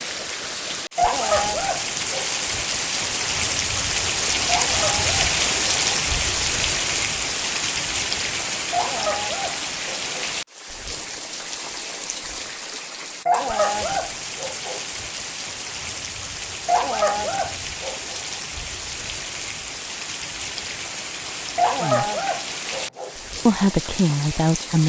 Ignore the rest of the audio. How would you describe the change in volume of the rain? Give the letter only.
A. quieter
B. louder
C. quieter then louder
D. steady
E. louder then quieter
A.